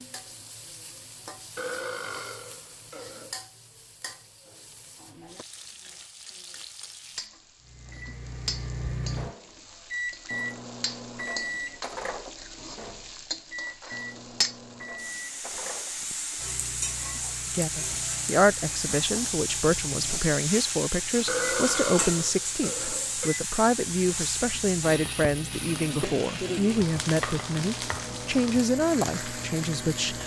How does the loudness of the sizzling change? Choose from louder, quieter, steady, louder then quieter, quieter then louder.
louder.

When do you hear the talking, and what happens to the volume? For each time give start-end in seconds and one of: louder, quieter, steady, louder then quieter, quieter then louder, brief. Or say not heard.
17.6-30.2 steady.